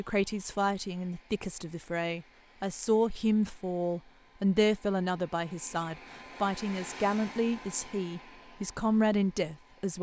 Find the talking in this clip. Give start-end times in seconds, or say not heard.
0.0-9.9.